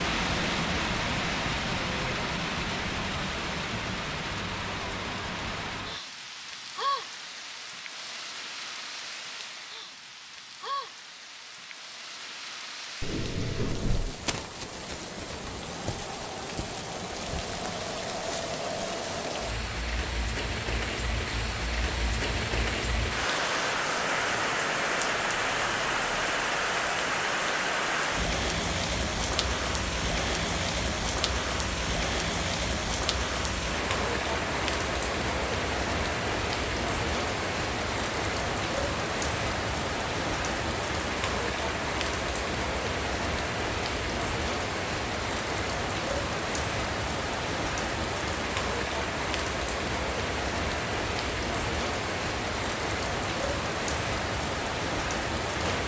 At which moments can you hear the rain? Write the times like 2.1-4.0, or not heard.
0.0-55.8.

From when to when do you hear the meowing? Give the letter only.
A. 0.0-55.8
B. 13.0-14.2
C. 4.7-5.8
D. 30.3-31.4
B.